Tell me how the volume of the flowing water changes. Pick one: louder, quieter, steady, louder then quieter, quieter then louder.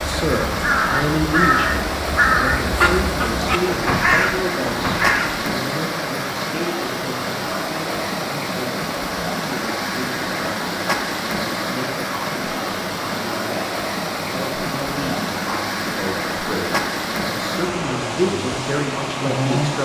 steady.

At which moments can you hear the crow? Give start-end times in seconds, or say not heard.
0.0-5.4.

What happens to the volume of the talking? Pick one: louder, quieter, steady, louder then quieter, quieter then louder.
quieter then louder.